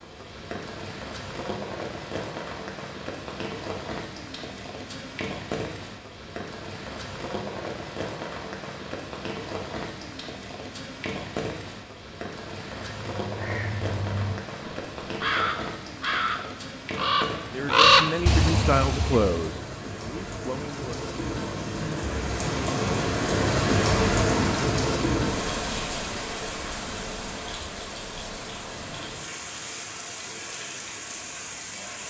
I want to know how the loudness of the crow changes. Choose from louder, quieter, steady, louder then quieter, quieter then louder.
louder then quieter.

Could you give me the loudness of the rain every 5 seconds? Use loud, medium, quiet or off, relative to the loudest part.
medium, medium, medium, medium, loud, medium, medium.